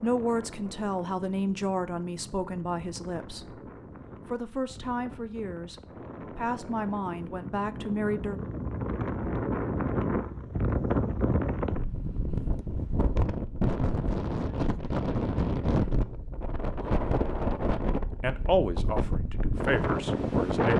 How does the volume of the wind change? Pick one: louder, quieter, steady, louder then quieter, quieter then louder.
louder.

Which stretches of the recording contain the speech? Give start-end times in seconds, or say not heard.
0.0-8.4, 18.2-20.7.